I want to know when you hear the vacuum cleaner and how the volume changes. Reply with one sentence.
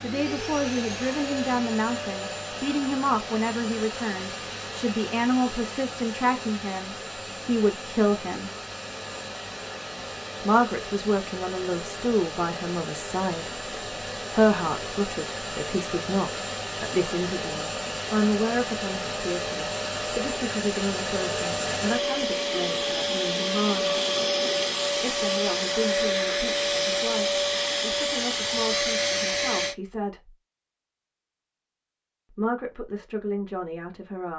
You can hear the vacuum cleaner from 0.0 to 29.8 s, getting louder.